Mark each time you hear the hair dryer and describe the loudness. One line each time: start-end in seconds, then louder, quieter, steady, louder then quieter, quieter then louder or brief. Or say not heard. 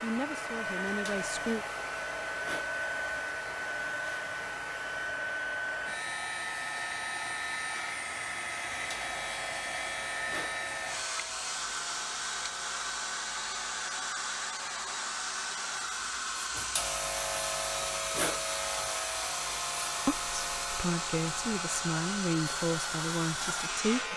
0.0-24.1 steady.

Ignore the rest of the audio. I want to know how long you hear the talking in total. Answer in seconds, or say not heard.
6 s.